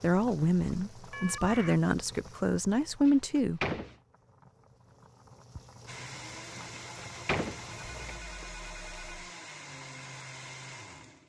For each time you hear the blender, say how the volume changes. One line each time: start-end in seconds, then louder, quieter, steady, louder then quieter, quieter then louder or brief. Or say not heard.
5.8-11.2 steady.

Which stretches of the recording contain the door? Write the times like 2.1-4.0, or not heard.
3.0-4.0, 6.7-8.2.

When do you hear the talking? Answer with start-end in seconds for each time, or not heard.
0.0-3.6.